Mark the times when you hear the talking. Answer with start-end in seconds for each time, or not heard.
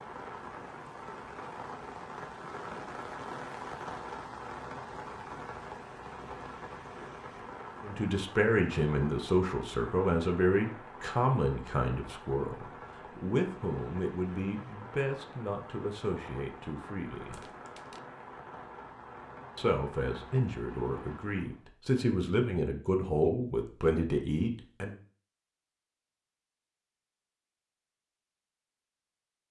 7.8-17.4, 19.6-24.9.